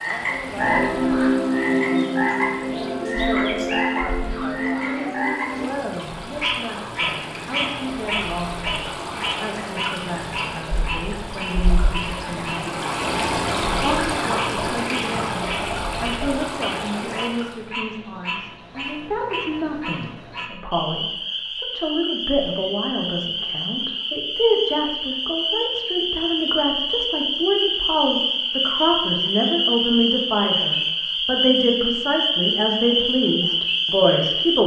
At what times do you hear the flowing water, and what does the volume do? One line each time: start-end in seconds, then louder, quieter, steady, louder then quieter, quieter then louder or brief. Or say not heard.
0.0-17.6 louder.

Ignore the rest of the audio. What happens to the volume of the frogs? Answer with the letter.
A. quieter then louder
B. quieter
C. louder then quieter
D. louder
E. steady
A.